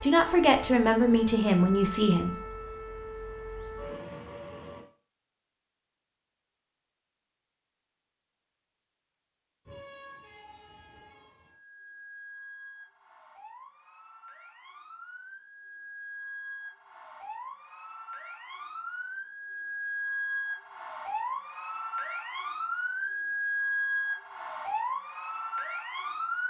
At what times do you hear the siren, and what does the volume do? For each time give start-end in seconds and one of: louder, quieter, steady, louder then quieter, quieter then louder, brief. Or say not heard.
0.0-4.8 steady
9.7-26.4 louder.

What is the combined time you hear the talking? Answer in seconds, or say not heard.
2 s.